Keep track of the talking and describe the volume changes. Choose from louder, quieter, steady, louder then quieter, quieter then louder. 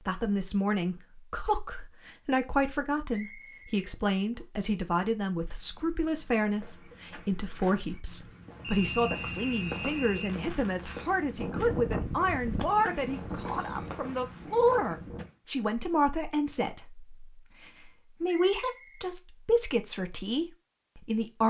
steady.